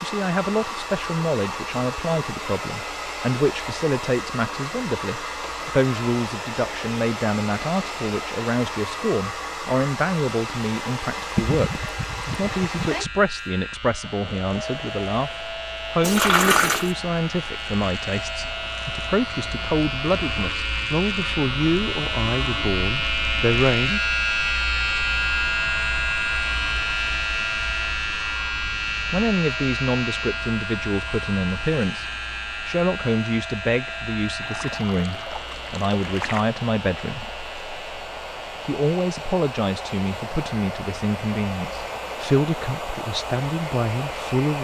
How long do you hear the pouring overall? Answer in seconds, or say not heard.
5 s.